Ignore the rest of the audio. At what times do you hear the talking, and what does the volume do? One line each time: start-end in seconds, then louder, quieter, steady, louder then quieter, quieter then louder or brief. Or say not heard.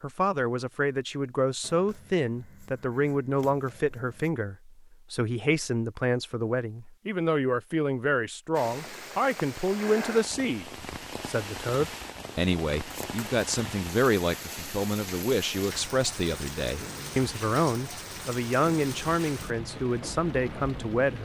0.0-21.2 steady.